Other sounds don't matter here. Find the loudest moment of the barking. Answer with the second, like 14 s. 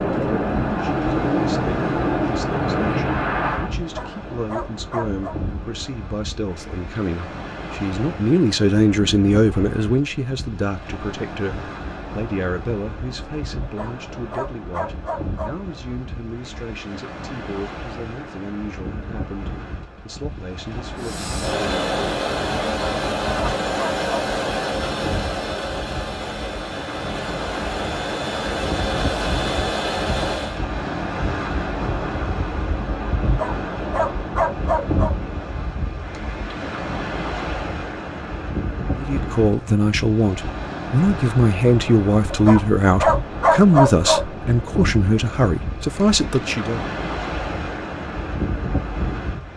44 s.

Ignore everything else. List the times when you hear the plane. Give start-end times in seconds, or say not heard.
0.0-3.8, 20.9-30.6.